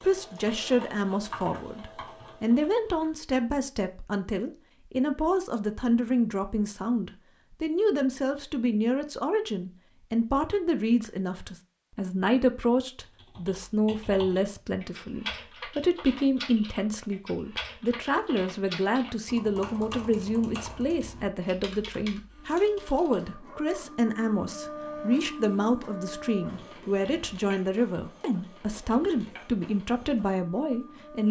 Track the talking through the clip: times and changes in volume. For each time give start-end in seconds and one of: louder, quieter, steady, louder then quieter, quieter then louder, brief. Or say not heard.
0.0-31.2 steady.